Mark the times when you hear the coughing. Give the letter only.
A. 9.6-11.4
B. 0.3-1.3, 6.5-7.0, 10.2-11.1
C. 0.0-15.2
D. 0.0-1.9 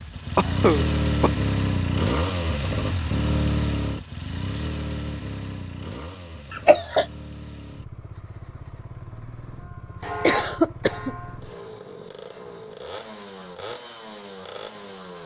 B.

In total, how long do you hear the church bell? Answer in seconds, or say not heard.
2 s.